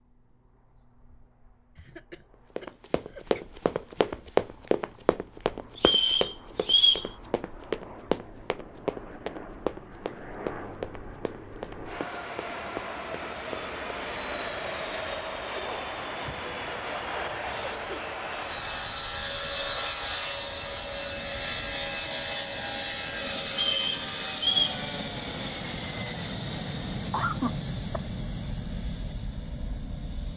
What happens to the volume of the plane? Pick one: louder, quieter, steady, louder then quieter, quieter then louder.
louder.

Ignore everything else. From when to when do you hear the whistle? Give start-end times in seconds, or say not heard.
5.8-7.0, 23.5-24.8.